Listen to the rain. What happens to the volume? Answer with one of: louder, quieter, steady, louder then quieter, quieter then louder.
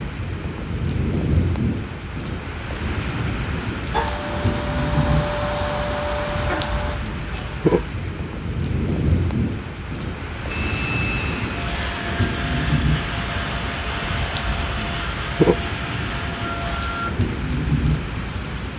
steady.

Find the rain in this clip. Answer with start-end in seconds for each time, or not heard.
0.0-18.7.